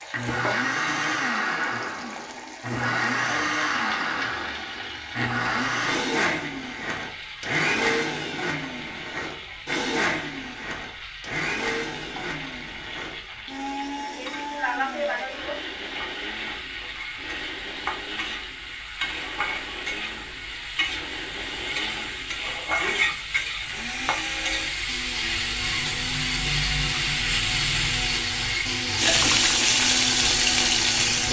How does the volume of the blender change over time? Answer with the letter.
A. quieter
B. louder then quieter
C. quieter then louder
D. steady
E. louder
C.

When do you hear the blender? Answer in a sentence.
The blender can be heard from 0.0 to 31.2 s.